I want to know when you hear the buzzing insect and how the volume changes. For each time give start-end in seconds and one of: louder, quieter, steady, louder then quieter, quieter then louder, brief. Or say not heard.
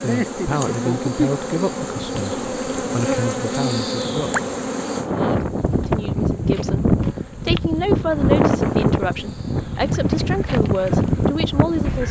0.0-12.0 quieter.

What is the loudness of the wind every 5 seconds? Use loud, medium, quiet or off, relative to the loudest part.
quiet, loud, loud.